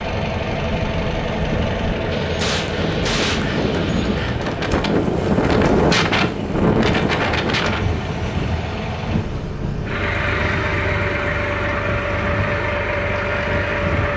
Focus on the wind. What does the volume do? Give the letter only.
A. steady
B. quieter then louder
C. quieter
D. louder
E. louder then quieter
E.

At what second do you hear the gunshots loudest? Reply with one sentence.
The volume of the gunshots peaks at 3 seconds.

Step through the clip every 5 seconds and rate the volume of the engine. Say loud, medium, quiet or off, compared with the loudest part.
loud, medium, loud.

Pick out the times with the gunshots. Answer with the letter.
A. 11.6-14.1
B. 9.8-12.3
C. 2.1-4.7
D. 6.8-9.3
C.